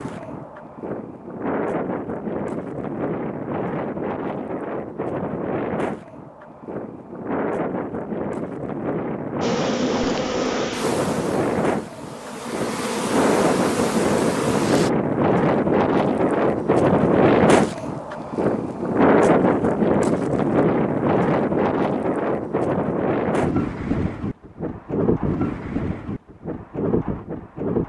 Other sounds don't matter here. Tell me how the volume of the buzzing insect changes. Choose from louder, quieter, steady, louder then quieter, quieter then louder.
quieter then louder.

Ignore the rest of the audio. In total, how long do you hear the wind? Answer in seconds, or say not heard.
28 s.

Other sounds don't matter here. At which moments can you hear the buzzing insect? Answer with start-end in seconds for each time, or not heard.
9.4-14.9.